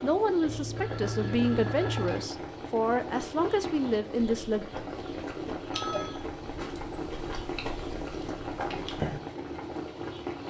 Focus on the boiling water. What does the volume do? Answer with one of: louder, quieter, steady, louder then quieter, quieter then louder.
steady.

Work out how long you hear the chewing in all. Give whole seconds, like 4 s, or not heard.
5 s.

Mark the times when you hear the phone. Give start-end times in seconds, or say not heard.
0.5-2.3, 5.7-6.9.